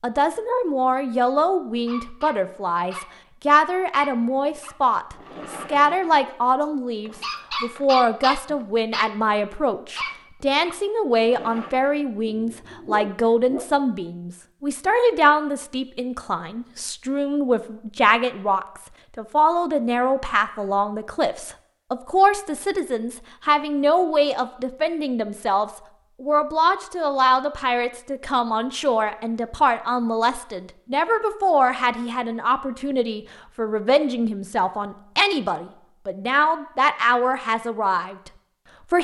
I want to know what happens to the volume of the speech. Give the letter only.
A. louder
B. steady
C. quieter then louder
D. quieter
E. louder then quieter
B.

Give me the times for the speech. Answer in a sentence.
The speech can be heard from 0.0 to 38.3 s.